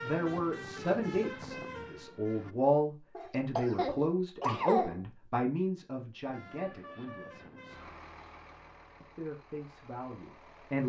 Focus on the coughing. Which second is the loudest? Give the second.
5 s.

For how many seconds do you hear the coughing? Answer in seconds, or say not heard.
2 s.